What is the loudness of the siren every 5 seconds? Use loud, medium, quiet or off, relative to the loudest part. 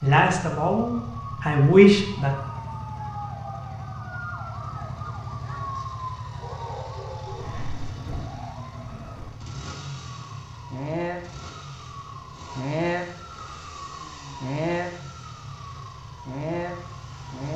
medium, medium, loud, loud.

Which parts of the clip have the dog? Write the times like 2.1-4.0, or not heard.
6.4-7.8.